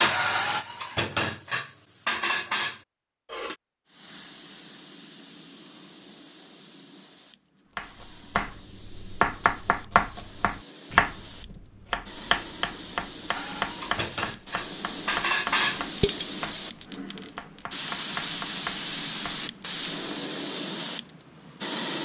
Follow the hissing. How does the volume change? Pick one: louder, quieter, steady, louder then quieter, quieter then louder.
louder.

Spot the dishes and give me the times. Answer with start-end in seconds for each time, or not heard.
0.0-3.5, 13.3-16.4.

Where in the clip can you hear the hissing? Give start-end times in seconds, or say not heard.
3.9-22.0.